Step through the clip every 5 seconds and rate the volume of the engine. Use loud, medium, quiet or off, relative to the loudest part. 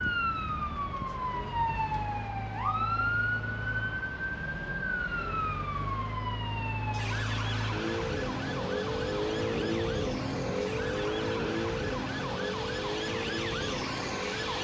medium, loud, loud.